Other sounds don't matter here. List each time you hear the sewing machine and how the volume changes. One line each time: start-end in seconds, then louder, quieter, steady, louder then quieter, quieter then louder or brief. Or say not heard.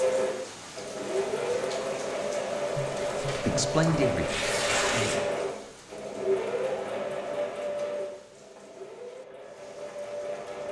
0.0-10.6 quieter.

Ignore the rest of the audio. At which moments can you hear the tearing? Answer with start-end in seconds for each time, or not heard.
2.7-5.2.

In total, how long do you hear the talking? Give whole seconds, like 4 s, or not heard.
2 s.